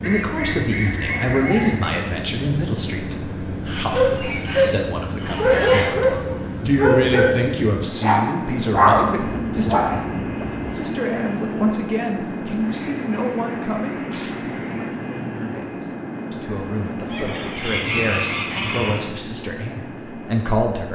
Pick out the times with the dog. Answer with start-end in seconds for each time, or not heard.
3.9-10.4.